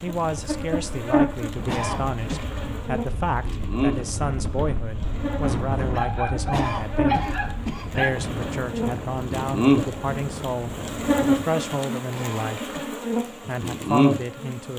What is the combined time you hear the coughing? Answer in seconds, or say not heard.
3 s.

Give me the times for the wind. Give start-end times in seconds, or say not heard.
0.0-11.6.